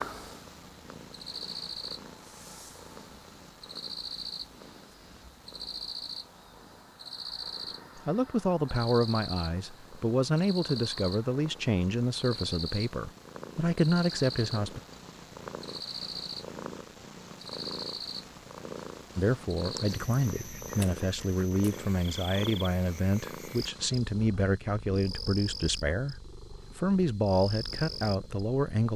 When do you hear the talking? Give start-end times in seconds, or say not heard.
8.0-14.8, 19.1-28.9.